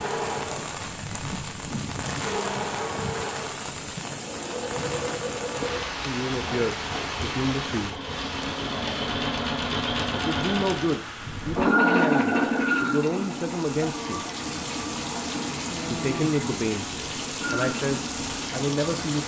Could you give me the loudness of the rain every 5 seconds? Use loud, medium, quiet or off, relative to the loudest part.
loud, loud, medium, loud.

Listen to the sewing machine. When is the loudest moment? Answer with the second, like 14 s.
12 s.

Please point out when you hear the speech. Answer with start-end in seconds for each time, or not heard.
6.0-8.0, 10.1-14.2, 15.9-19.2.